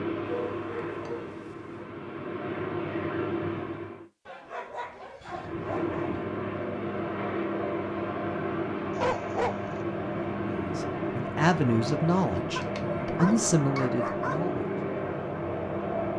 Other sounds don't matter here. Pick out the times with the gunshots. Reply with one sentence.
The gunshots can't be heard in this clip.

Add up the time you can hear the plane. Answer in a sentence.
You can hear the plane for 15 seconds altogether.